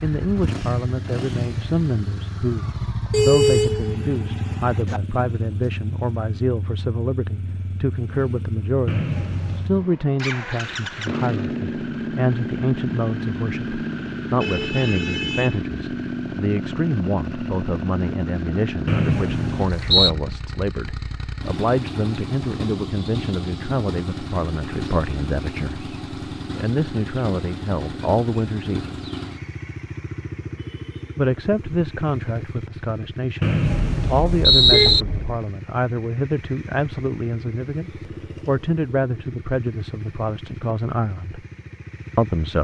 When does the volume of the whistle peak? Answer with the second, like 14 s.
35 s.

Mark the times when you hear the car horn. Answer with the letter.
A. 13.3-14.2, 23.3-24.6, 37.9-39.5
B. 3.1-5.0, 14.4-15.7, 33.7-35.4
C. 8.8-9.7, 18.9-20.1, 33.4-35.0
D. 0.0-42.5
B.